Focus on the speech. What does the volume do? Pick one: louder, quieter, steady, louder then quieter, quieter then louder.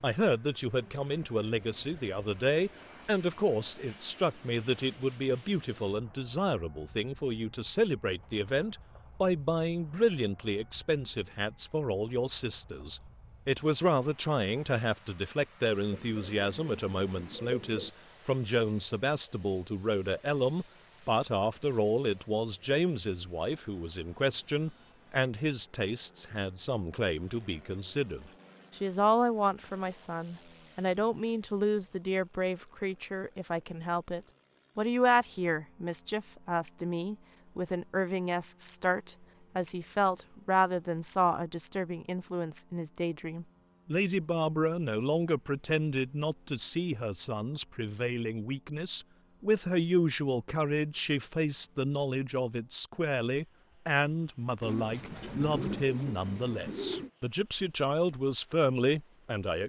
steady.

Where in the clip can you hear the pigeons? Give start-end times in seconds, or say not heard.
15.9-17.9, 54.6-57.1.